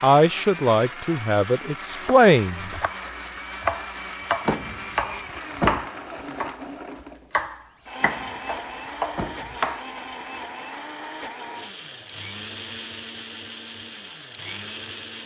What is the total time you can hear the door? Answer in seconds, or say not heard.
3 s.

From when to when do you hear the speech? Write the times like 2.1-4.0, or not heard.
0.0-2.8.